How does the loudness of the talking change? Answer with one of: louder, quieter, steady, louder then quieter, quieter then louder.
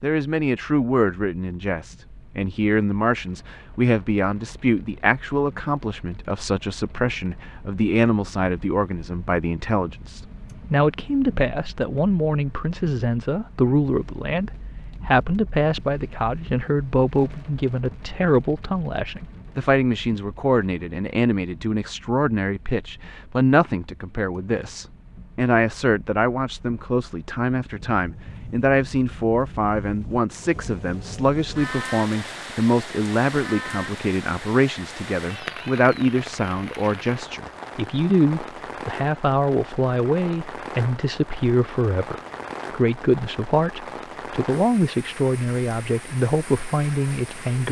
steady.